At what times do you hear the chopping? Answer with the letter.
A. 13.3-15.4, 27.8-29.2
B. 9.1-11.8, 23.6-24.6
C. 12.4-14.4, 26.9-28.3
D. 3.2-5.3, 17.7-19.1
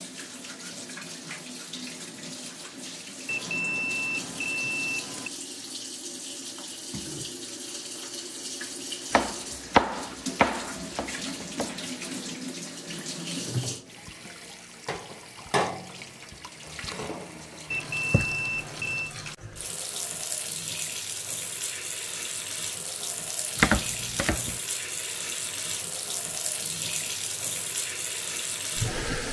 B.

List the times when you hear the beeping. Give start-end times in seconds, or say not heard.
3.2-5.3, 17.7-19.1.